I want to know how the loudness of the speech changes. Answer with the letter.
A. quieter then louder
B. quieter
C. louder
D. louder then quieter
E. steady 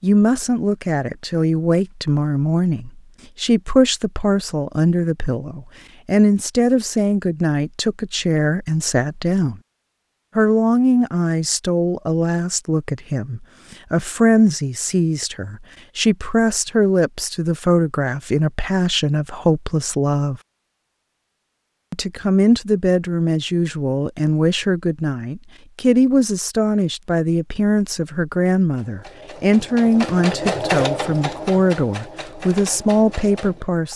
E.